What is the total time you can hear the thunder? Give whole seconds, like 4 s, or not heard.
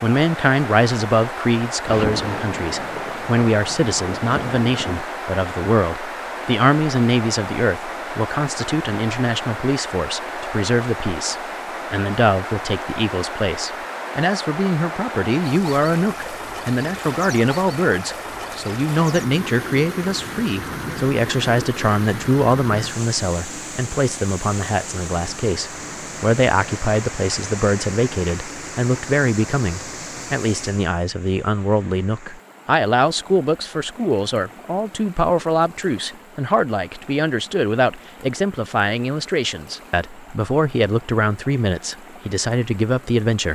3 s.